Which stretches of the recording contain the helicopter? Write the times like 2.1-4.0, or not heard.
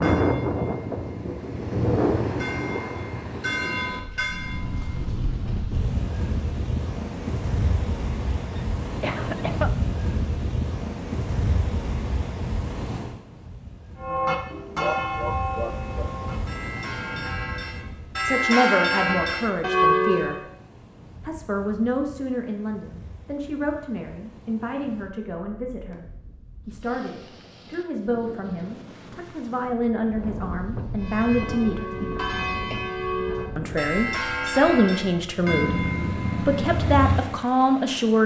not heard.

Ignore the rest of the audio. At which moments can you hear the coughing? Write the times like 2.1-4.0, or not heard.
8.6-9.7, 14.8-16.1, 32.0-33.0.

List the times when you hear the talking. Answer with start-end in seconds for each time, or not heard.
17.8-20.4, 21.2-26.1, 26.6-31.9, 33.5-38.2.